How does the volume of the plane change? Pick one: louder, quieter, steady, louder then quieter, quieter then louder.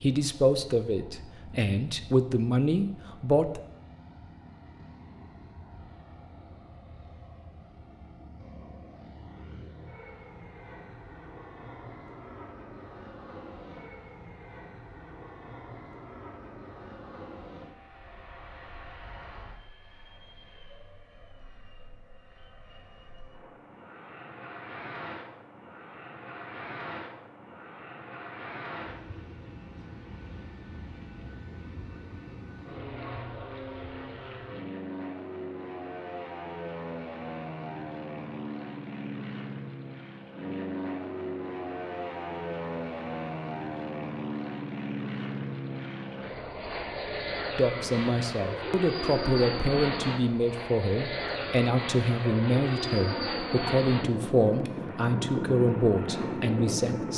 louder.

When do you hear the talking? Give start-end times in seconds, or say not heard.
0.0-3.6, 47.5-57.1.